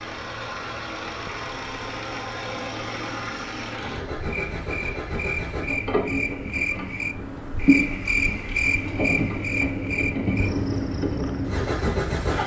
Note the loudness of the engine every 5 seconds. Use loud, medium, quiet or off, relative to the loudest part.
medium, loud, loud.